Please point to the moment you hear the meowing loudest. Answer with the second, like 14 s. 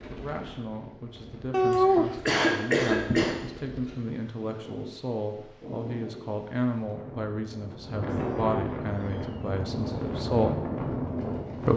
2 s.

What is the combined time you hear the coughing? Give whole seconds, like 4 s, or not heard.
2 s.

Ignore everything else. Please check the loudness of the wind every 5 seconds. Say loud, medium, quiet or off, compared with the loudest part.
quiet, medium, loud.